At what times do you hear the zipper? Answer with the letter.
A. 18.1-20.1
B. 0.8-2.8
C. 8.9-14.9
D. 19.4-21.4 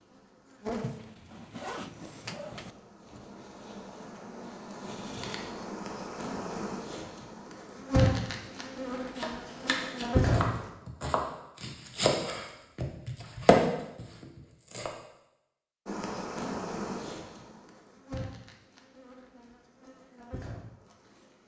B.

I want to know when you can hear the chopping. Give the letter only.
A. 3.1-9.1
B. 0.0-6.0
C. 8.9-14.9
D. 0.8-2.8
C.